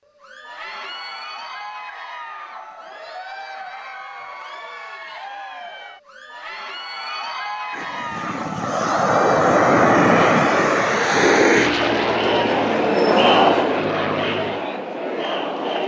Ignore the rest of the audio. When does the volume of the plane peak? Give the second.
10 s.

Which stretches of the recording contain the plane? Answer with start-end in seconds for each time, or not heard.
7.8-14.7.